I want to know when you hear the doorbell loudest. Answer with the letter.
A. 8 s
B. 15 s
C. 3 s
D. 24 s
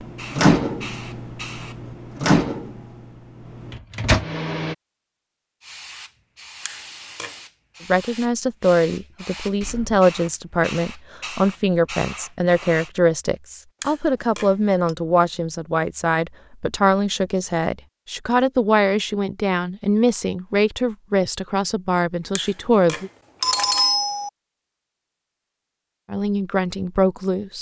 D.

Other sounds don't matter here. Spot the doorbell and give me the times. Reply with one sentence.
The doorbell can be heard from 6.7 to 7.3 s, from 13.8 to 14.9 s and from 22.4 to 24.3 s.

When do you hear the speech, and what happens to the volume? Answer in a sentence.
You can hear the speech from 7.8 to 23.1 s, at a steady volume; and briefly from 26.1 to 27.5 s.